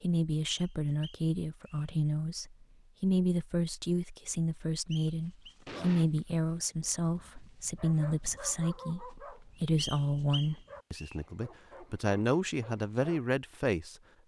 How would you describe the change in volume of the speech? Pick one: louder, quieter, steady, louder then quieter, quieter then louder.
steady.